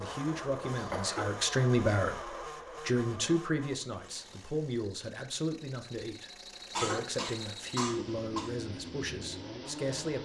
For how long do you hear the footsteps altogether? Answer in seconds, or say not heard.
not heard.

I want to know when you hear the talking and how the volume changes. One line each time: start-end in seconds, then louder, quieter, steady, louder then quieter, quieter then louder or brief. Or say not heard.
0.0-10.1 quieter.